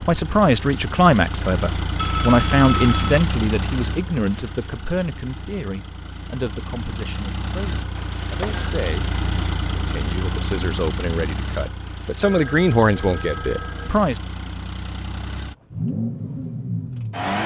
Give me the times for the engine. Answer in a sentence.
You can hear the engine from 0.0 to 17.4 s.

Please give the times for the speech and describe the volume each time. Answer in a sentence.
The speech can be heard from 0.0 to 14.2 s, getting quieter then louder.